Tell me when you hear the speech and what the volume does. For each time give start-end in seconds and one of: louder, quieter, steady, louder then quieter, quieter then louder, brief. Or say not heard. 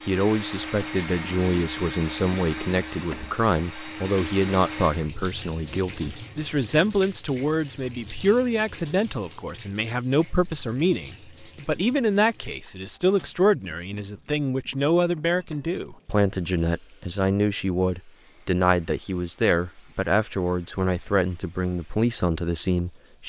0.1-23.2 steady.